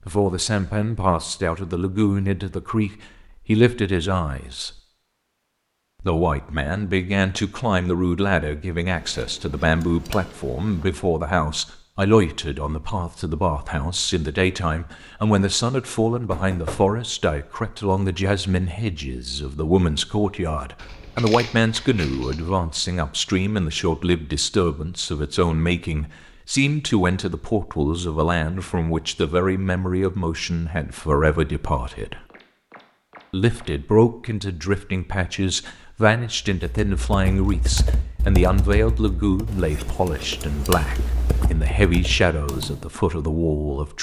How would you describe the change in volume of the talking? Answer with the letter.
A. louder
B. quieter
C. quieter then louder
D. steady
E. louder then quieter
D.